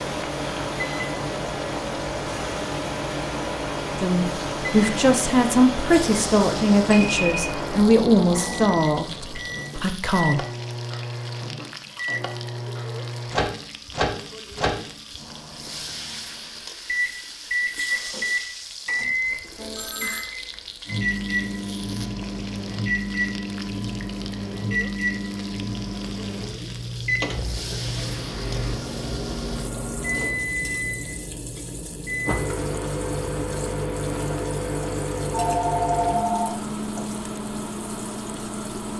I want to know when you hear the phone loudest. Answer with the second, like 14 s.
36 s.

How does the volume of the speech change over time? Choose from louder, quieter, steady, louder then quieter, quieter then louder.
quieter.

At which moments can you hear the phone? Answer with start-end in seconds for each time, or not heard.
7.0-7.5, 19.6-20.2, 35.3-37.0.